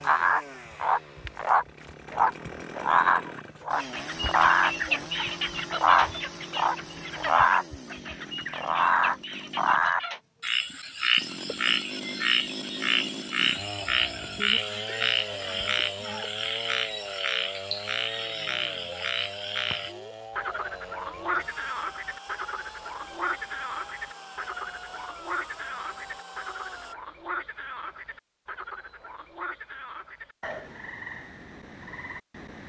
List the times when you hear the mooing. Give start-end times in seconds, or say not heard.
not heard.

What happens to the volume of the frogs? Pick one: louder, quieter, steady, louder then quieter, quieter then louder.
quieter.